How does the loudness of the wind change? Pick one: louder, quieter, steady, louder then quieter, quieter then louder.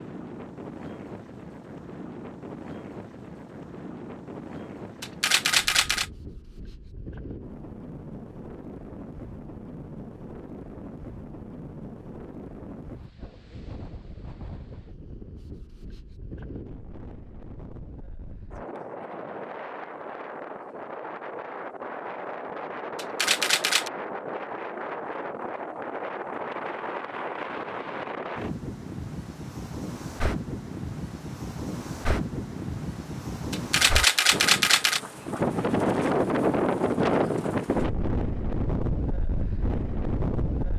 louder.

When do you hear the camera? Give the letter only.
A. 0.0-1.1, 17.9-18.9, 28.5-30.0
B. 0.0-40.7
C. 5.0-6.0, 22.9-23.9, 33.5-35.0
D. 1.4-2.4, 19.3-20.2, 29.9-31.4
C.